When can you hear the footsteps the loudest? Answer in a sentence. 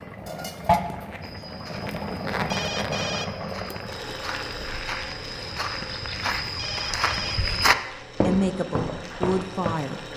The volume of the footsteps peaks at 8 seconds.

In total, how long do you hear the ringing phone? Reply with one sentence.
You can hear the ringing phone for 2 seconds altogether.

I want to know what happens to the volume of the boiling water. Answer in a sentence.
The loudness of the boiling water goes down.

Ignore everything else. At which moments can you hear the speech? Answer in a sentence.
The speech can be heard from 8.1 to 10.0 s.